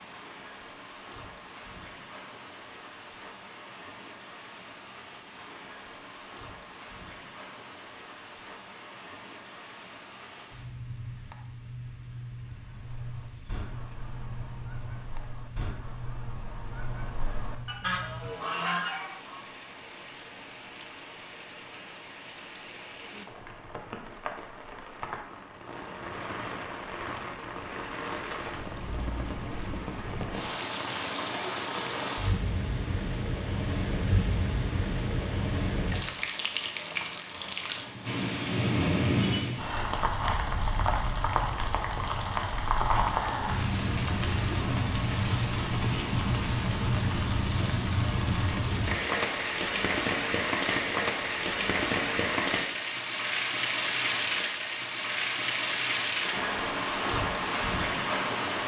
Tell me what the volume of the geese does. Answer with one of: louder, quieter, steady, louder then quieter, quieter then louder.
louder.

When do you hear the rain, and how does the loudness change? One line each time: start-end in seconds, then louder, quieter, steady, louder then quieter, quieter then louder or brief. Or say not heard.
0.0-58.6 louder.